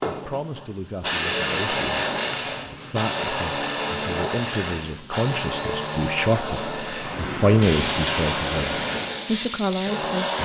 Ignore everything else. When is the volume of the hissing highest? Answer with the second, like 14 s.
8 s.